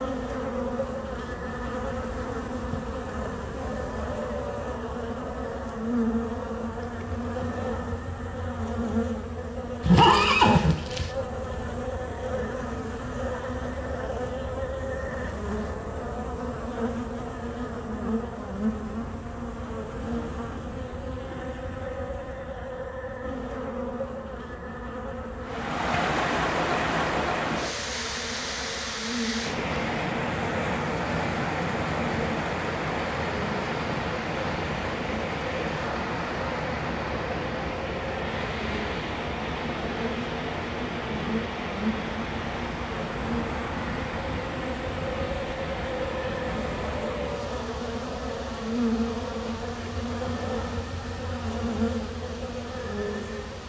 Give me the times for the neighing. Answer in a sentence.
You can hear the neighing from 9.8 to 11.1 s.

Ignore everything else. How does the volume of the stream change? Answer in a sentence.
The loudness of the stream goes down.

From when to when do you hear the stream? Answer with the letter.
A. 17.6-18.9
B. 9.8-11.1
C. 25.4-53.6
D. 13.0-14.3
C.